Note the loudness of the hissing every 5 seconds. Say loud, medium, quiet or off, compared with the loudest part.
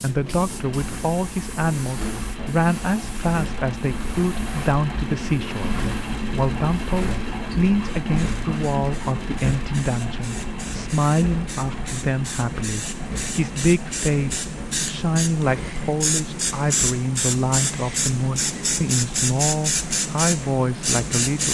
quiet, quiet, medium, loud, loud.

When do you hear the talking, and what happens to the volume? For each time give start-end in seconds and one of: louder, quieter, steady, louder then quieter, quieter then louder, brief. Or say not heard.
0.0-21.4 steady.